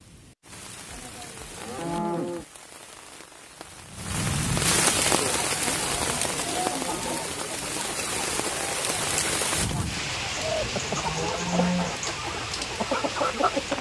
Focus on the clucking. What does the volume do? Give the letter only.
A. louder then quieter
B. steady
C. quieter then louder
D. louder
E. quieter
D.